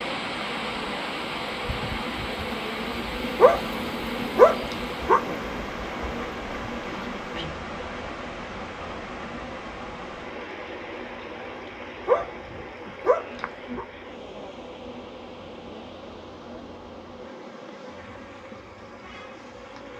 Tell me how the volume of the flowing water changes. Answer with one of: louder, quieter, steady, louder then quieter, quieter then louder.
quieter.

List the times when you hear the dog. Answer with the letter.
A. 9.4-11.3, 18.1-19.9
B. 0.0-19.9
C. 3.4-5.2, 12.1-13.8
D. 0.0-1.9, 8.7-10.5
C.